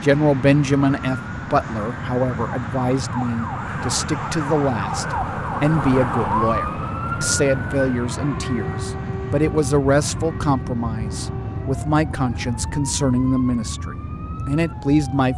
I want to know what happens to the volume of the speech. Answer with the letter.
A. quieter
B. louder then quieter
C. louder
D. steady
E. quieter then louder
D.